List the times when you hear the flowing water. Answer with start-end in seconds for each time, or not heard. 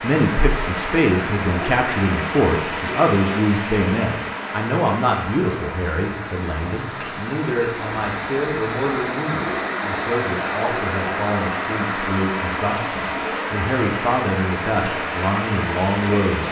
0.0-16.4.